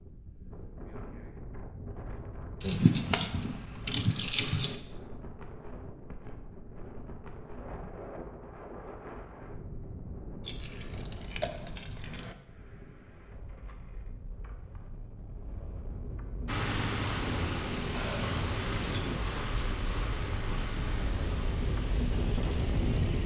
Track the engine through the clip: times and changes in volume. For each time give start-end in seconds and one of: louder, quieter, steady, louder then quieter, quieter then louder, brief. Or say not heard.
16.4-23.2 quieter.